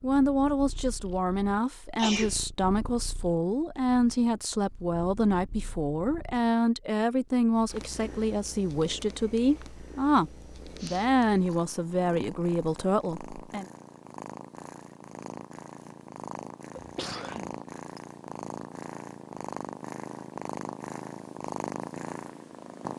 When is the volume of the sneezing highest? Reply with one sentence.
The loudest moment of the sneezing is at 2 seconds.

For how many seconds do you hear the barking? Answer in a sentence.
The barking can't be heard in this clip.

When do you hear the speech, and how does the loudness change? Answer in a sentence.
The speech can be heard from 0.0 to 13.7 s, at a steady volume.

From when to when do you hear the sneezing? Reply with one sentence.
You can hear the sneezing from 1.9 to 2.4 s, from 10.8 to 11.6 s and from 16.8 to 17.6 s.